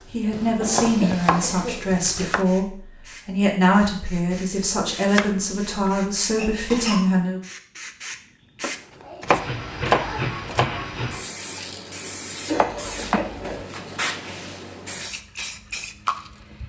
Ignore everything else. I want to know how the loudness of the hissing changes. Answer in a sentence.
The volume of the hissing goes up.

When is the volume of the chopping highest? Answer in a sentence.
The volume of the chopping peaks at 10 seconds.